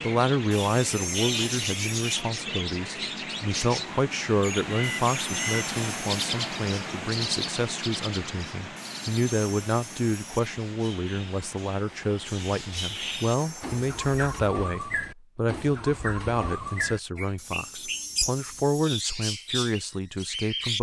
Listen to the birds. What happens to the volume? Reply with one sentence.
The loudness of the birds goes down, then up.